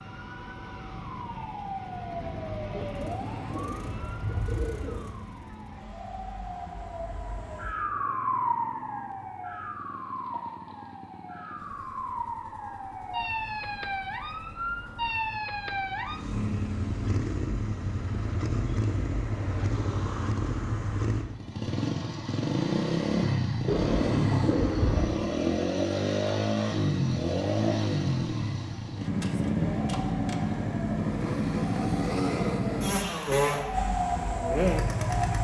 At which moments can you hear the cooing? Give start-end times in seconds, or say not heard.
2.7-5.2, 23.6-25.2.